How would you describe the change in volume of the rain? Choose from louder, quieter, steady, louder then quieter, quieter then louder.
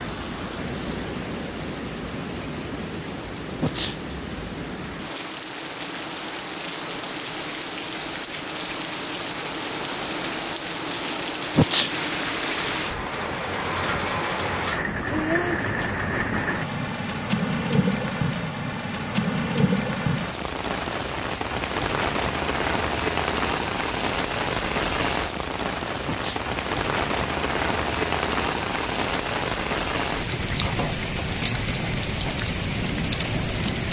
louder.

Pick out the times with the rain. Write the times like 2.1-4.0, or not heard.
0.0-33.8.